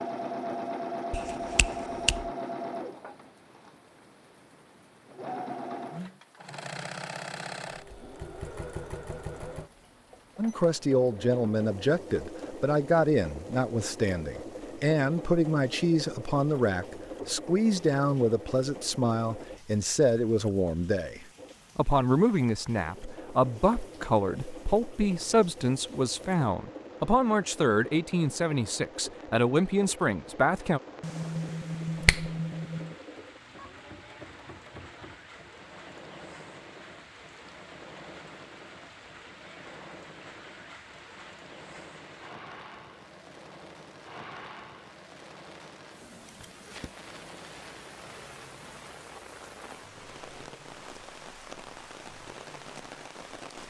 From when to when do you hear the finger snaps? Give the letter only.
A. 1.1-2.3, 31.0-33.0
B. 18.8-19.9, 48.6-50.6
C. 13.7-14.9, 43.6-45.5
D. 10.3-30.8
A.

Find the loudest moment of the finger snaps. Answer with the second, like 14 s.
32 s.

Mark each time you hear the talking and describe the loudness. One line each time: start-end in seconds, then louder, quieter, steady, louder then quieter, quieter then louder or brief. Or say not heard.
10.3-30.8 steady.